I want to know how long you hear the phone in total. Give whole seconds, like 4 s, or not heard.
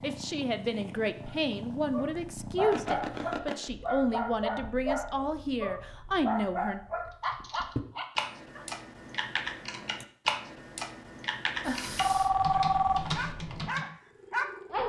3 s.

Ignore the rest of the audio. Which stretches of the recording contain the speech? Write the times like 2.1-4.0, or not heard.
0.0-6.8.